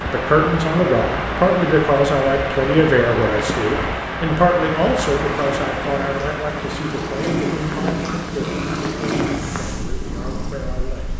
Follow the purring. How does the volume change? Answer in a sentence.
The volume of the purring goes up, then down.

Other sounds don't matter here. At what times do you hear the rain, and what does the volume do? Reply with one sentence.
You can hear the rain from 0.0 to 11.1 s, getting quieter.